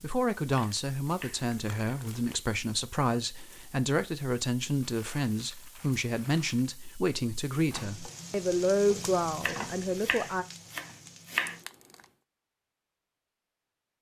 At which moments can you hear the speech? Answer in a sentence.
You can hear the speech from 0.0 to 10.4 s.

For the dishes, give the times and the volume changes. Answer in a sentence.
The dishes can't be heard in this clip.